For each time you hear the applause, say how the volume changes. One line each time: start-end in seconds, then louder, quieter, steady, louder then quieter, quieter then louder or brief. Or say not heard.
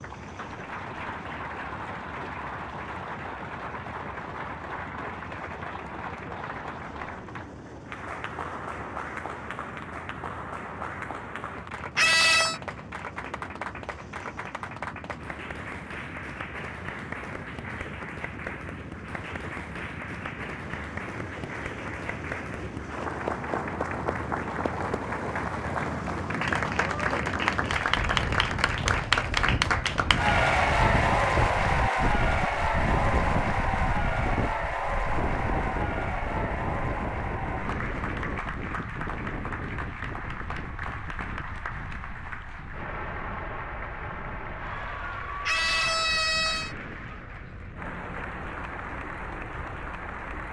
0.0-50.4 louder then quieter.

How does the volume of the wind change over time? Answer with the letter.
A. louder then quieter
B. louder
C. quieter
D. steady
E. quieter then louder
A.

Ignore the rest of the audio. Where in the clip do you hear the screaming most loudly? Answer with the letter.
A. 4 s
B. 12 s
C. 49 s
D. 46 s
B.